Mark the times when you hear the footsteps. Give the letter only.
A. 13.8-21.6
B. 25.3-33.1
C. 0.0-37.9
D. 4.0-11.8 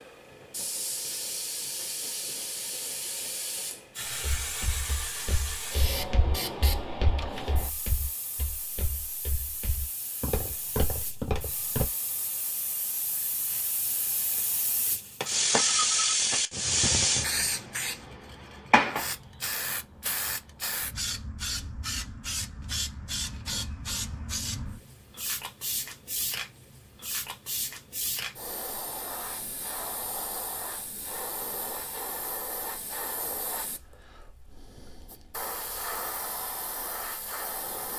D.